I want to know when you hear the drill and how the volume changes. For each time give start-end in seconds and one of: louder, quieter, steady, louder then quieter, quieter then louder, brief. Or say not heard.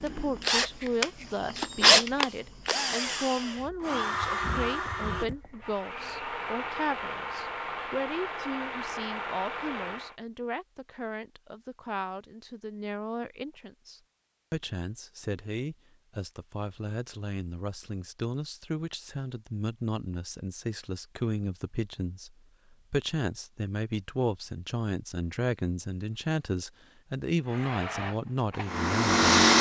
0.0-10.2 quieter
27.4-29.5 brief.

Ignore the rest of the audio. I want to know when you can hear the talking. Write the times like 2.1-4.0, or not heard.
0.0-29.3.